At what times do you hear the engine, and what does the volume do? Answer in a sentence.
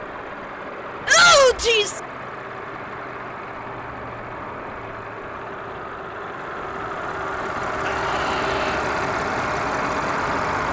You can hear the engine from 0.0 to 10.6 s, getting louder.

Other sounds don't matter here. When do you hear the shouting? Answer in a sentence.
The shouting can be heard from 1.1 to 2.0 s and from 7.8 to 8.8 s.